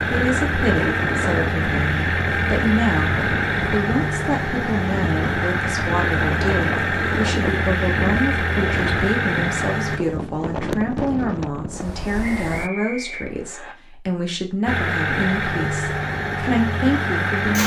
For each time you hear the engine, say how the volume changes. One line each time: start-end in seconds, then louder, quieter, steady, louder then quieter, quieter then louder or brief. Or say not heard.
0.0-10.0 steady
14.7-17.6 brief.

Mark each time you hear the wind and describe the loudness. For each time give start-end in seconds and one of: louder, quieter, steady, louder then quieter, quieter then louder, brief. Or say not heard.
0.0-12.7 steady.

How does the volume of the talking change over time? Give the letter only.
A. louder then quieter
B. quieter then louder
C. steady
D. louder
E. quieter
C.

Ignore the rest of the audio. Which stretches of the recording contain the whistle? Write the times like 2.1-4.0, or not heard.
12.2-13.8.